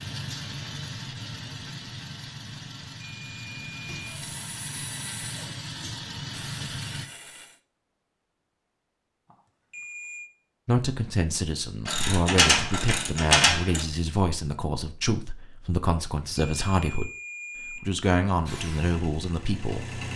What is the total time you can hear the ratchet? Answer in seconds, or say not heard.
2 s.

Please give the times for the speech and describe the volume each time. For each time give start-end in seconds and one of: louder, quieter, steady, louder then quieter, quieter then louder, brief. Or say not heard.
10.7-17.1 steady
17.8-20.0 brief.